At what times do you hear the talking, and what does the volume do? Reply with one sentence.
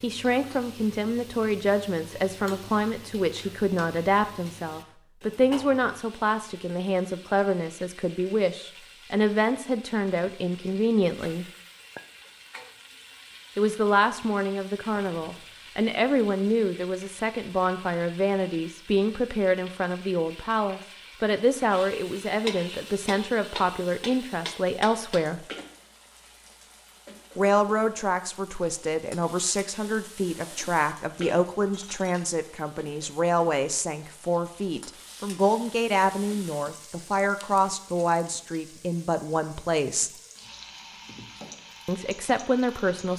The talking can be heard from 0.0 to 11.4 s, at a steady volume; from 13.6 to 25.4 s, at a steady volume; from 27.4 to 40.1 s, at a steady volume; and briefly from 41.9 to 43.1 s.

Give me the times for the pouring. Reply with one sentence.
The pouring can't be heard in this clip.